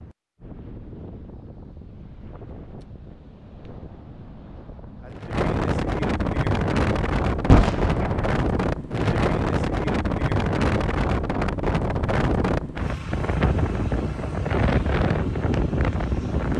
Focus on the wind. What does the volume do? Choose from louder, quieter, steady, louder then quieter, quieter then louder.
louder.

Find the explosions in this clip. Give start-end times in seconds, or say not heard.
7.5-8.3.